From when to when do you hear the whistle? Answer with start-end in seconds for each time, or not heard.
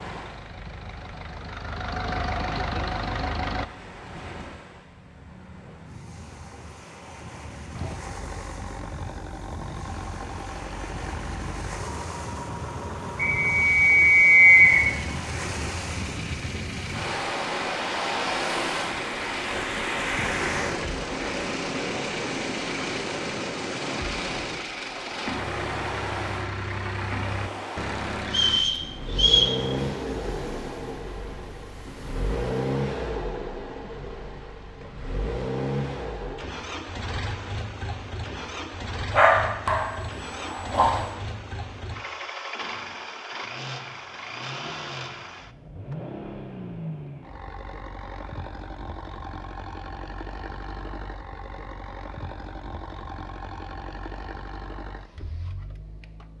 13.2-14.8, 28.3-29.6.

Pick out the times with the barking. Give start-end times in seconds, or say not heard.
39.1-41.0.